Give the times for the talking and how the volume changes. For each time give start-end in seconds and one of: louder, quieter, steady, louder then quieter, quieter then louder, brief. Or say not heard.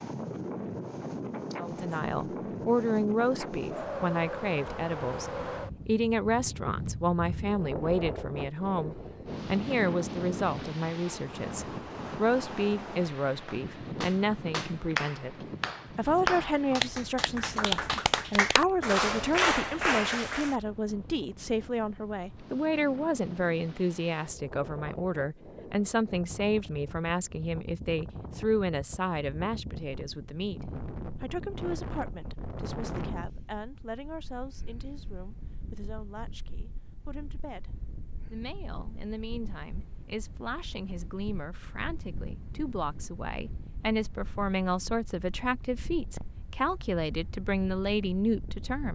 1.6-48.9 quieter then louder.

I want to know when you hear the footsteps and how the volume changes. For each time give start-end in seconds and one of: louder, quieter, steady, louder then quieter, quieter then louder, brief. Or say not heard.
not heard.